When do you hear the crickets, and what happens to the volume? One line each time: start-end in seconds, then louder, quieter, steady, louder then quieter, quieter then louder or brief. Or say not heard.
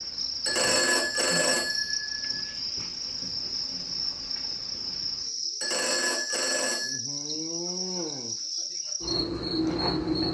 0.0-10.2 steady.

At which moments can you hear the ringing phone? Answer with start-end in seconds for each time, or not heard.
0.5-2.4, 5.6-7.0.